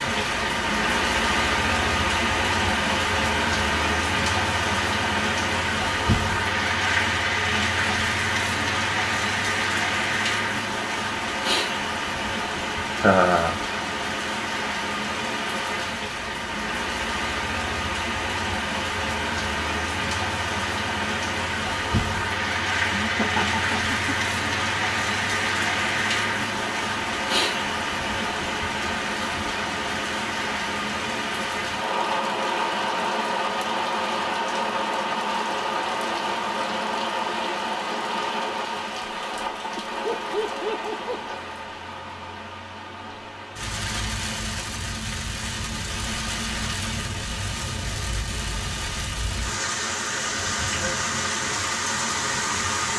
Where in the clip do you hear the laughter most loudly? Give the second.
13 s.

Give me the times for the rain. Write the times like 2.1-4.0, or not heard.
0.0-52.9.